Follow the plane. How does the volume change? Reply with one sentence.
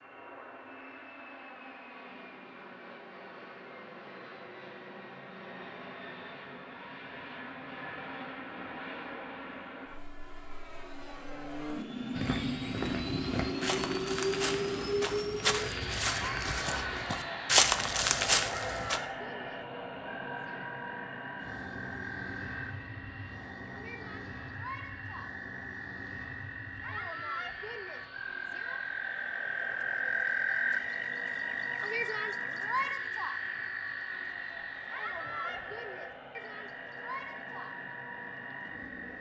The volume of the plane goes up, then down.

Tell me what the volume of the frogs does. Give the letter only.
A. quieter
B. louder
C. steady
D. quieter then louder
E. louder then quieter
E.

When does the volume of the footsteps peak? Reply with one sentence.
The loudest moment of the footsteps is at 18 seconds.